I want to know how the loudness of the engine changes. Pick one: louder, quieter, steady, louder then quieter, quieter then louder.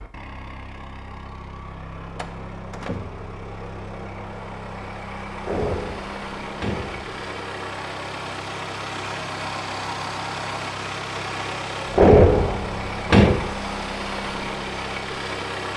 louder.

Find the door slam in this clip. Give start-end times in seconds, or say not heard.
2.1-3.2, 5.5-7.1, 11.9-13.5.